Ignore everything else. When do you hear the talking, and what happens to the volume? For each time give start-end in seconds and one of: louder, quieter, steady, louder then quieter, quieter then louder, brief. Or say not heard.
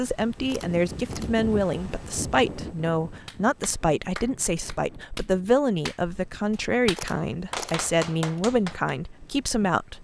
0.0-10.0 steady.